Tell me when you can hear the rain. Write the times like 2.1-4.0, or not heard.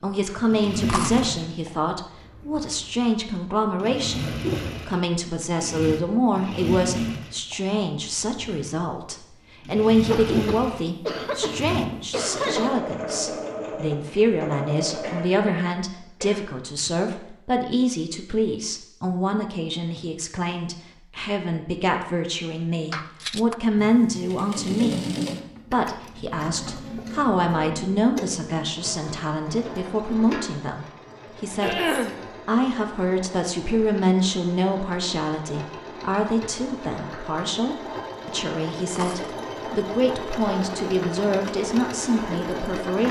not heard.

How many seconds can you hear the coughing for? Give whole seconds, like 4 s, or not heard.
5 s.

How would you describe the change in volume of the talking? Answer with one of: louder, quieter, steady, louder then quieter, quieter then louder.
steady.